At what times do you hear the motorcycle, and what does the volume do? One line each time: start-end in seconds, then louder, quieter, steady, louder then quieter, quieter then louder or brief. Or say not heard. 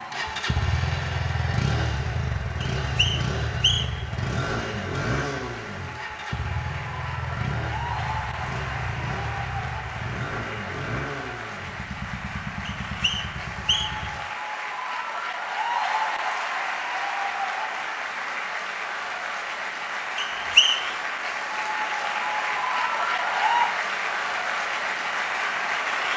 0.0-14.2 quieter.